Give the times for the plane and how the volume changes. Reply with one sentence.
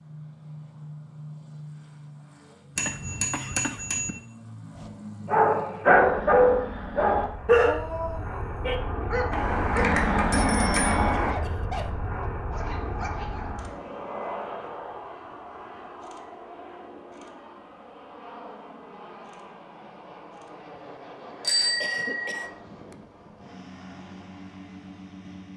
The plane can be heard from 0.0 to 25.5 s, getting louder then quieter.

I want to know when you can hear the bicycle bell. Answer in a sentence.
The bicycle bell can be heard from 2.8 to 4.2 s, from 9.3 to 11.3 s and from 21.4 to 22.4 s.